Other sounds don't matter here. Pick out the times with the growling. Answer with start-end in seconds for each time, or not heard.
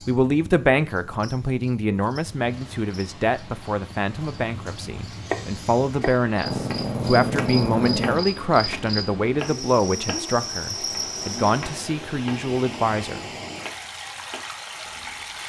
6.5-8.3.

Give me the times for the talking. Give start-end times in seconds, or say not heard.
0.1-13.3.